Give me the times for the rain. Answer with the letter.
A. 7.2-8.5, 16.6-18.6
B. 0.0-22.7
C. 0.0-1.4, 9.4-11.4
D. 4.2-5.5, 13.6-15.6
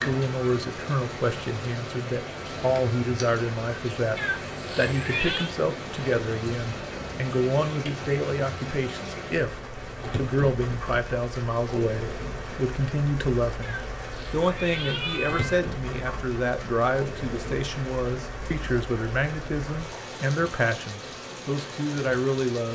B.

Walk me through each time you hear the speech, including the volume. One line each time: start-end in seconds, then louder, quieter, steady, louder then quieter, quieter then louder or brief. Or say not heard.
0.0-22.7 steady.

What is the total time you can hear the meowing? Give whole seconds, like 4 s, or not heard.
3 s.